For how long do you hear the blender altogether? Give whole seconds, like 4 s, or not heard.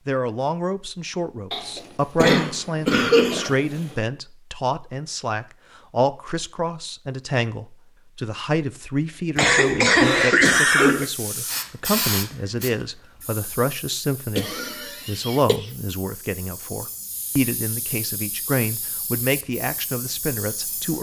not heard.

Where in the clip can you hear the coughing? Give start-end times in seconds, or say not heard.
1.5-3.8, 9.3-11.1, 14.3-15.7.